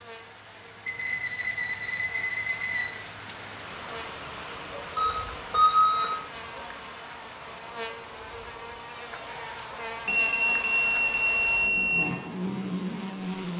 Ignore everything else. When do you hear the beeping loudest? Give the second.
6 s.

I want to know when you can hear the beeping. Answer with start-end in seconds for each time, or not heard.
0.8-2.9, 5.0-6.2, 10.1-12.1.